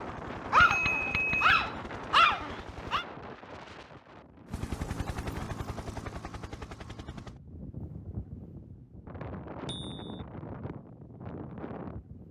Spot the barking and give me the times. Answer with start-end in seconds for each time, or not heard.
0.5-3.0.